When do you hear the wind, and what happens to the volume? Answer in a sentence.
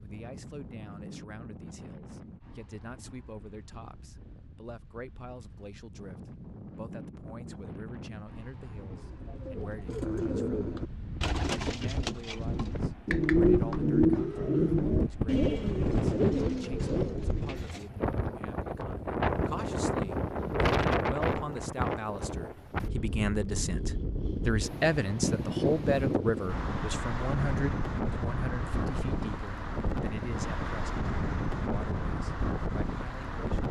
The wind can be heard from 0.0 to 33.6 s, getting louder.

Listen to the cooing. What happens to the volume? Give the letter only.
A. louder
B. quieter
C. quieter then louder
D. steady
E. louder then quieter
E.